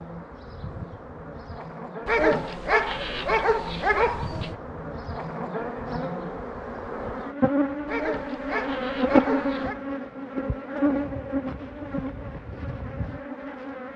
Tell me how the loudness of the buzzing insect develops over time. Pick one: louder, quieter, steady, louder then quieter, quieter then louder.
louder then quieter.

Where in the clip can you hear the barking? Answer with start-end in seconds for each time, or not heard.
2.0-4.5, 7.8-9.8.